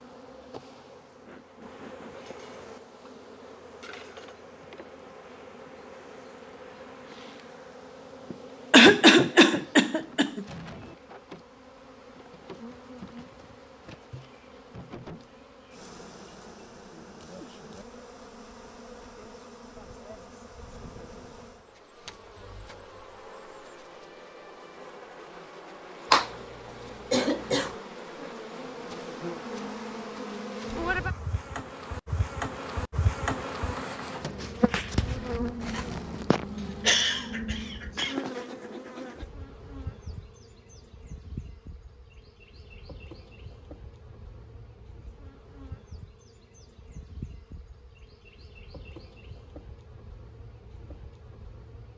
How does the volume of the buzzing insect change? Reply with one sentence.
The volume of the buzzing insect goes up, then down.